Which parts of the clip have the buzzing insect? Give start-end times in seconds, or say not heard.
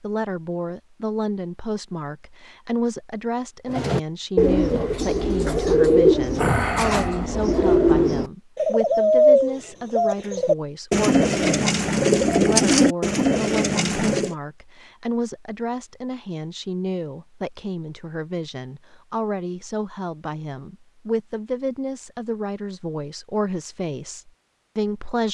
not heard.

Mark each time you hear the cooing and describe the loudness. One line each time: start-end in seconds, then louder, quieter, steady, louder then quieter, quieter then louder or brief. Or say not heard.
3.6-14.3 steady.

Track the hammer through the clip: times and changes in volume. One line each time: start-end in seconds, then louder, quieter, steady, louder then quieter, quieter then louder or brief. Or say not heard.
not heard.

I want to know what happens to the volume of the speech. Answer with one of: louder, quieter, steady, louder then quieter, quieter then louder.
steady.